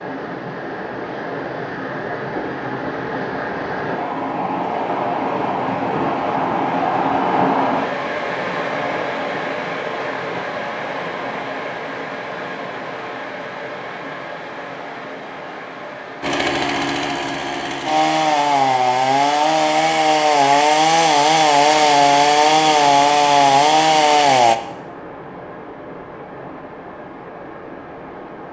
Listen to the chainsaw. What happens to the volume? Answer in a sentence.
The volume of the chainsaw goes up.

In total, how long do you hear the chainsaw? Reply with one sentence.
You can hear the chainsaw for 8 seconds altogether.